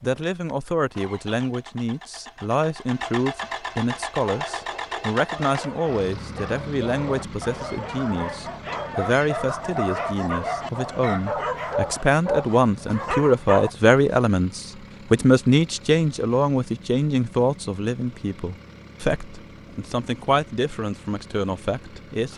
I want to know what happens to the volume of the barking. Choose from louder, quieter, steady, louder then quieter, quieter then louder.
louder.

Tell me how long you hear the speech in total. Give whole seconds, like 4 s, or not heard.
22 s.